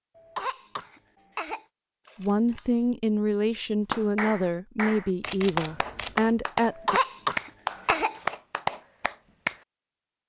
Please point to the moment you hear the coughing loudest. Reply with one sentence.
The loudest moment of the coughing is at 7 seconds.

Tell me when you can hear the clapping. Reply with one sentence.
You can hear the clapping from 3.9 to 9.6 s.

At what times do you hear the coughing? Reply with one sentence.
The coughing can be heard from 0.1 to 1.6 s and from 6.7 to 8.3 s.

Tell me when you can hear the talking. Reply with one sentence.
The talking can be heard from 2.1 to 7.0 s.